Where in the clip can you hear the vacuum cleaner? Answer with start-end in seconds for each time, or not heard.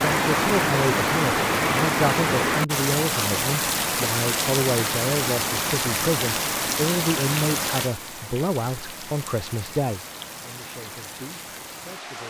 not heard.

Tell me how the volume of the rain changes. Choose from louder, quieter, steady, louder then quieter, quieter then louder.
quieter.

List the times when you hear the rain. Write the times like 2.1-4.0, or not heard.
0.0-12.2.